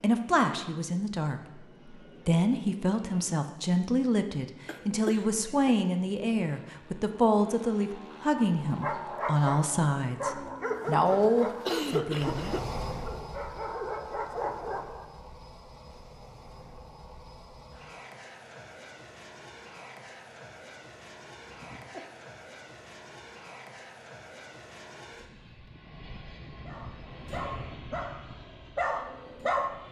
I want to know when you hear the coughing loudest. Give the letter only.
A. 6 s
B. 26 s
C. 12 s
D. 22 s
C.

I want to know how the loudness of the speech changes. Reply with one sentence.
The loudness of the speech stays about the same.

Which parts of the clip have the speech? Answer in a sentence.
The speech can be heard from 0.0 to 12.6 s.